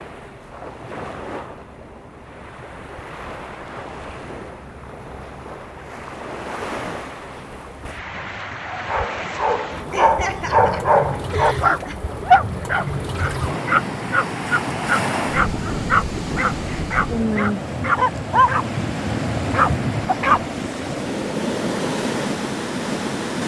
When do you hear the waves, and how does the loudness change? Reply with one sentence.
You can hear the waves from 0.0 to 23.4 s, getting louder.